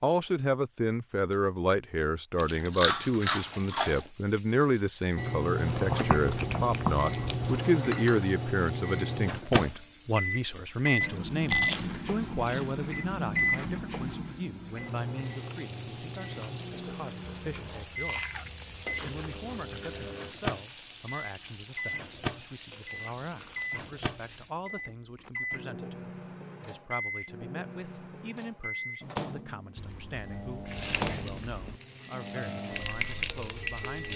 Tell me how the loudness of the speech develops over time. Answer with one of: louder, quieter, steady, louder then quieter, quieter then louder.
quieter.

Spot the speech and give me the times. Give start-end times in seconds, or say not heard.
0.0-34.1.